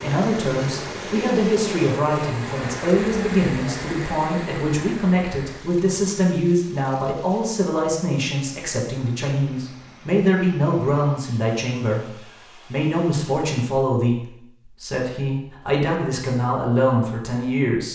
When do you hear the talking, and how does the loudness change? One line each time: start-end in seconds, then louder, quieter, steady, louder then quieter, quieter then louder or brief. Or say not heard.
0.0-17.9 steady.